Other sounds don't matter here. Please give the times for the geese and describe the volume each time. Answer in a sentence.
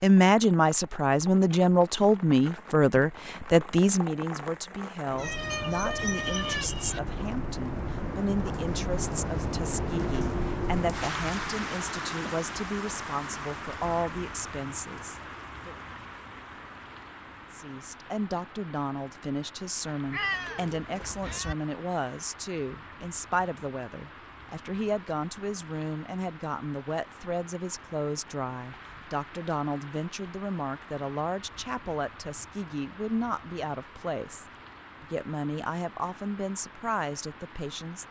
The geese can't be heard in this clip.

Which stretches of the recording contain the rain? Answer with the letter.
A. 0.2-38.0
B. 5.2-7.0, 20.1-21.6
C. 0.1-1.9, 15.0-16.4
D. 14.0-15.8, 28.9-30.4
A.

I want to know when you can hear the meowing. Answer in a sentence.
The meowing can be heard from 5.2 to 7.0 s and from 20.1 to 21.6 s.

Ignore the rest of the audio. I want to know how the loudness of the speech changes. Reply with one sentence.
The loudness of the speech goes down.